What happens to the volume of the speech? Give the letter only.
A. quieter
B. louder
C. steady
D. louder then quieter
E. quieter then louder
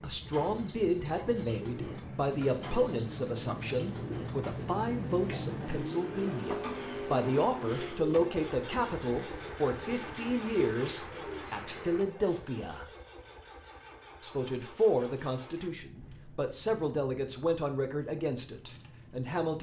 C.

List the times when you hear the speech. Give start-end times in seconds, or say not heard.
0.0-12.8, 14.2-19.5.